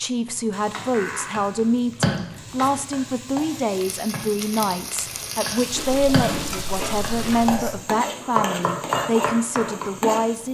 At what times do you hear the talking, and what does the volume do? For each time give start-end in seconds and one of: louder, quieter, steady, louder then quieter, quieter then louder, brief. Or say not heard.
0.0-10.4 steady.